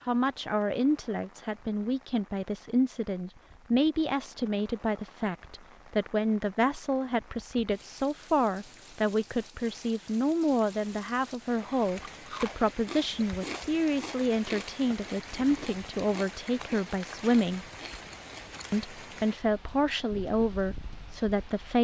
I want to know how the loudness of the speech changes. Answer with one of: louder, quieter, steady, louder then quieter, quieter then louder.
steady.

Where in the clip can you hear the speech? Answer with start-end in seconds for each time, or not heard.
0.1-17.6, 18.7-21.7.